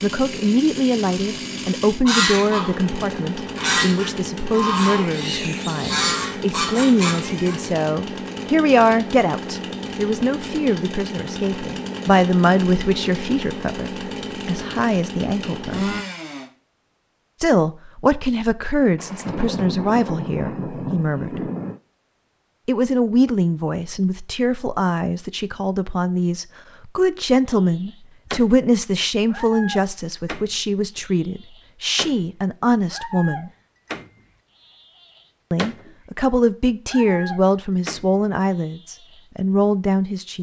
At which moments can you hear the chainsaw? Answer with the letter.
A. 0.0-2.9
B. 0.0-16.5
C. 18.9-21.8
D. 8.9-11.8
B.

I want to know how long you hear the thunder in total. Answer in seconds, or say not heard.
3 s.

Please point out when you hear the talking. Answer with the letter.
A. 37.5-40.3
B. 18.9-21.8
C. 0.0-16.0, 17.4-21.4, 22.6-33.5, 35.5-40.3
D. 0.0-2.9
C.